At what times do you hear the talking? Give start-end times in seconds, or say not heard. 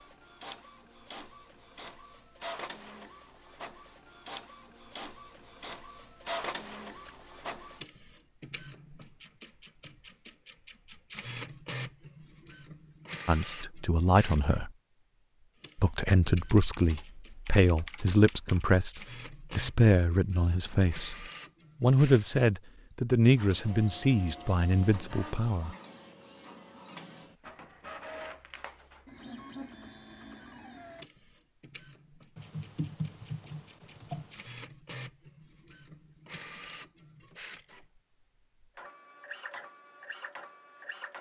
13.2-14.7, 15.8-25.7.